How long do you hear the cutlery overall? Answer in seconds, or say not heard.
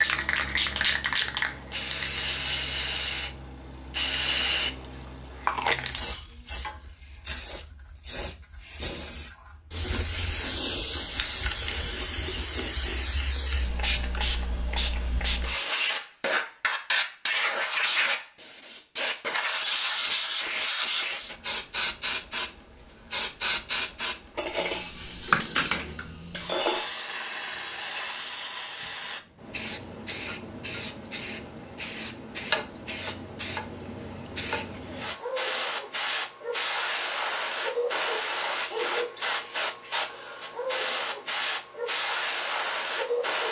4 s.